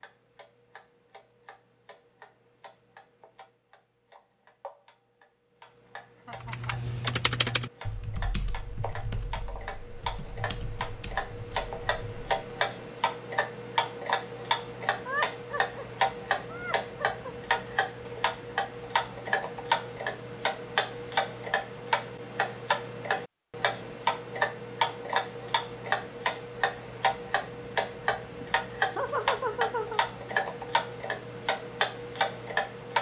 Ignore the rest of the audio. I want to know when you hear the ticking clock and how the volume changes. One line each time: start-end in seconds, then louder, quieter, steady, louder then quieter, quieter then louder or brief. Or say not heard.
0.0-32.9 louder.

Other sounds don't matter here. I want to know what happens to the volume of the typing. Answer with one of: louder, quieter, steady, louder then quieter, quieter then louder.
quieter.